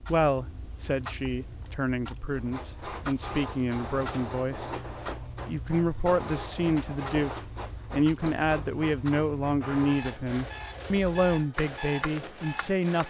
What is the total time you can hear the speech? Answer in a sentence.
You can hear the speech for 12 seconds altogether.